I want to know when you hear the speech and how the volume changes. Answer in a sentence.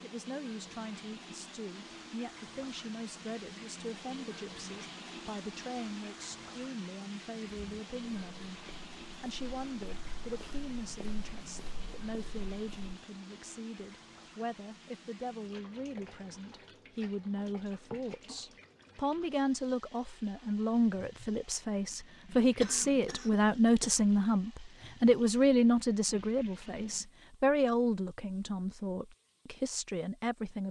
The speech can be heard from 0.0 to 30.6 s, getting louder.